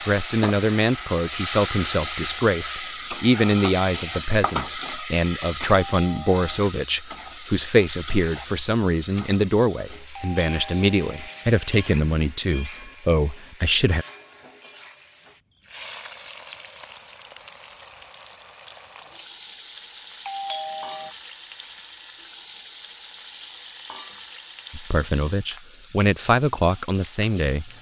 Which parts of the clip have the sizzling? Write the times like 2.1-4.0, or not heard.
0.0-27.7.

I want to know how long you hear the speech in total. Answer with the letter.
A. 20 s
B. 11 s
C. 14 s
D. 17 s
D.